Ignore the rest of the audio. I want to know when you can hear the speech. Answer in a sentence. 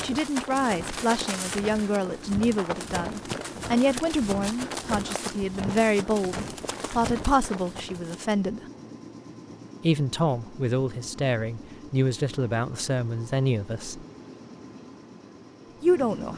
You can hear the speech from 0.0 to 8.6 s, from 9.8 to 14.1 s and from 15.8 to 16.3 s.